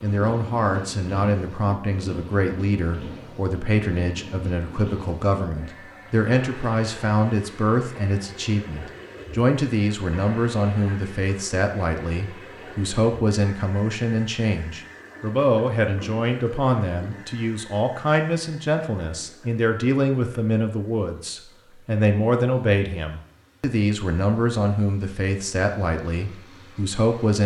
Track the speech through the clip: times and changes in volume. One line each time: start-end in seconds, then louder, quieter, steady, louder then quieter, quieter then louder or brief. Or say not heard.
0.0-27.4 steady.